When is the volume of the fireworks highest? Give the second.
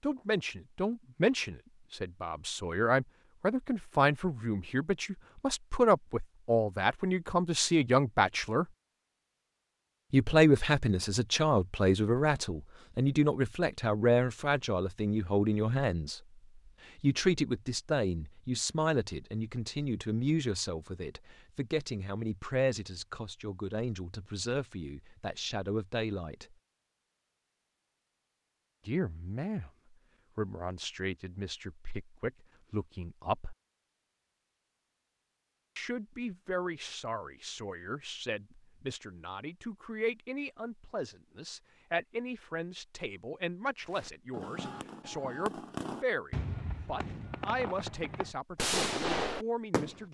49 s.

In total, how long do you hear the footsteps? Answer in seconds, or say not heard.
not heard.